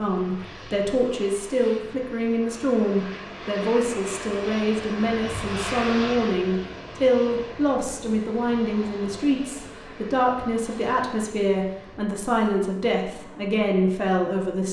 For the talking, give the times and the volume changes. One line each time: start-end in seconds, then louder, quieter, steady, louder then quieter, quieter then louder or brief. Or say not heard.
0.0-14.6 steady.